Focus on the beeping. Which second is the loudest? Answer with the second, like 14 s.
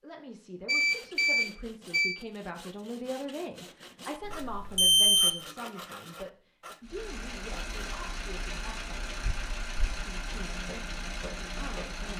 5 s.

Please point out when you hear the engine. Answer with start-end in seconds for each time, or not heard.
6.8-12.1.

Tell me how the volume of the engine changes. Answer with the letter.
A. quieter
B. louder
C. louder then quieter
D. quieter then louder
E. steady
E.